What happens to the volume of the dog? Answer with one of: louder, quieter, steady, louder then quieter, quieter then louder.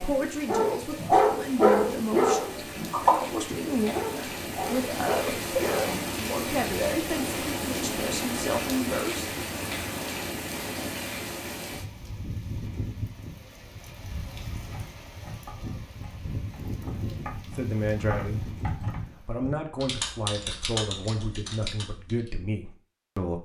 quieter.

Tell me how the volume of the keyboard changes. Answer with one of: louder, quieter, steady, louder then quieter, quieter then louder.
louder.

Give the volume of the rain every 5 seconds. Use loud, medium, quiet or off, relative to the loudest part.
medium, loud, medium, medium, off.